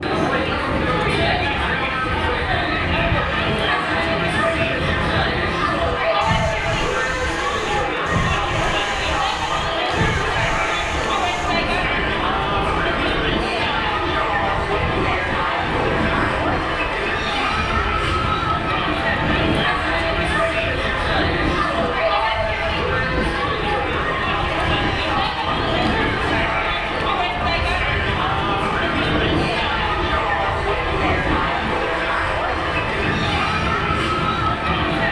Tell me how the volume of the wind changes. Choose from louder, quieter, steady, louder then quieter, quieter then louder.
steady.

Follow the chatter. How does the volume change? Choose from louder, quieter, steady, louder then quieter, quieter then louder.
steady.